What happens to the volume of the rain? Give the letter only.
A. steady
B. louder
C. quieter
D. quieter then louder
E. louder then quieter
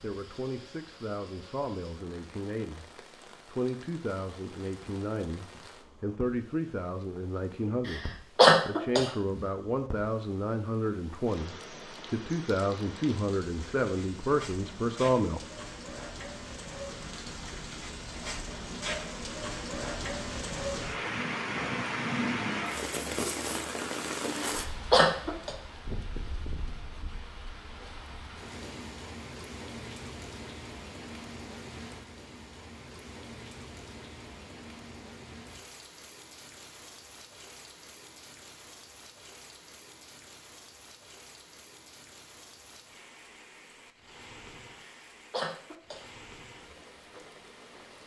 E.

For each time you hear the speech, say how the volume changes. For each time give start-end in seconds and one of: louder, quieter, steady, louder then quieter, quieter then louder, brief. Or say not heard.
0.0-15.4 louder.